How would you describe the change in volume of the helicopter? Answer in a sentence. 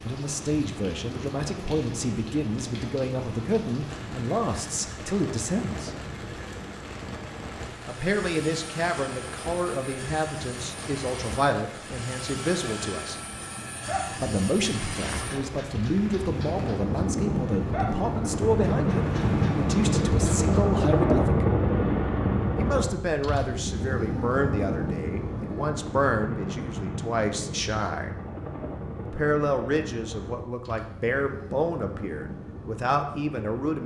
The volume of the helicopter goes up, then down.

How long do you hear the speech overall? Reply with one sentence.
You can hear the speech for 29 seconds altogether.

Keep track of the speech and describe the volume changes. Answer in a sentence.
The loudness of the speech stays about the same.